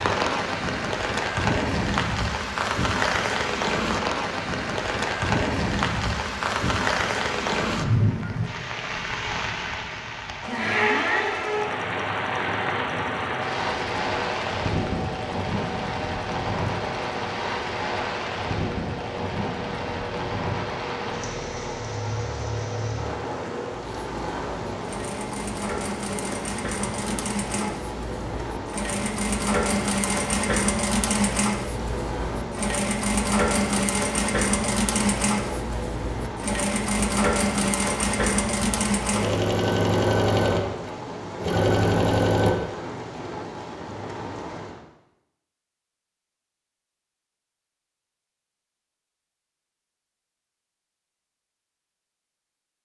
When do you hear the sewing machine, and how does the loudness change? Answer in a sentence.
The sewing machine can be heard from 10.4 to 42.5 s, getting louder.